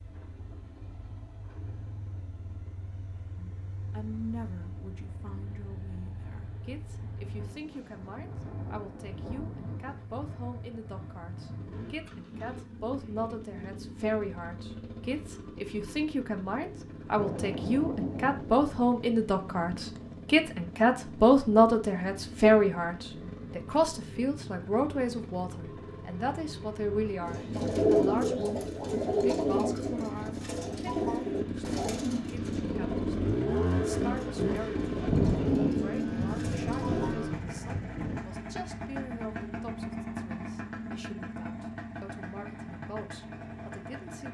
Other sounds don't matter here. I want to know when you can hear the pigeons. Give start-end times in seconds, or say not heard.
27.2-37.2.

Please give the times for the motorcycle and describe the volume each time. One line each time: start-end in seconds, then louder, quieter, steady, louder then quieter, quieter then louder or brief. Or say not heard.
0.0-44.2 louder.